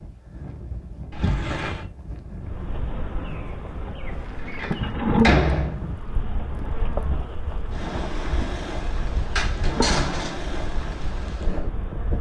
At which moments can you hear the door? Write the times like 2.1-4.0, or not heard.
1.1-1.9, 4.5-6.0, 9.3-10.4.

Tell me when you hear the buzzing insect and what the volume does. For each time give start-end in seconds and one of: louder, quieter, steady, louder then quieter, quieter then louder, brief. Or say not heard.
2.4-12.1 louder then quieter.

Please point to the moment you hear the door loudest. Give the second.
5 s.